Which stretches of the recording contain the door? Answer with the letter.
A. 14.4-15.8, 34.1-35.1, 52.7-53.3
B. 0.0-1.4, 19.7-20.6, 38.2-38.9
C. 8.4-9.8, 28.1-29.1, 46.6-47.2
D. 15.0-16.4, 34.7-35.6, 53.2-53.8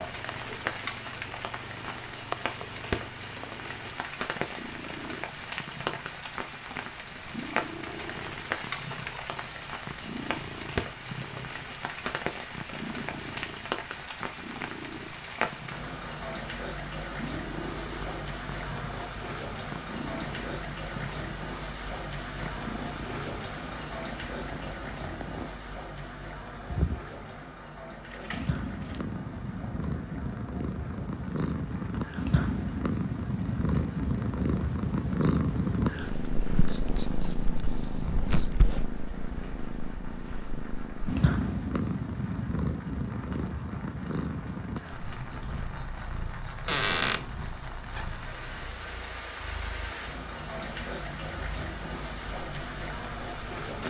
C.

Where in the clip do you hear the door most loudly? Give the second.
47 s.